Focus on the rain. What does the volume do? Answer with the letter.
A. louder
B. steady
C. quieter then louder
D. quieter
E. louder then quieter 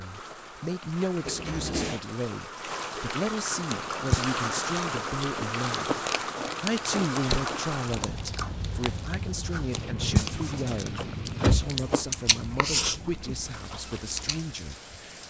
E.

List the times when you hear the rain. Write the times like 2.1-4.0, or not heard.
0.0-15.2.